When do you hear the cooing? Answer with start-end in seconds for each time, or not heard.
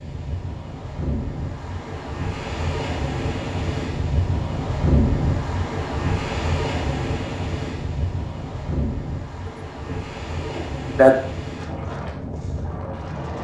9.8-11.2.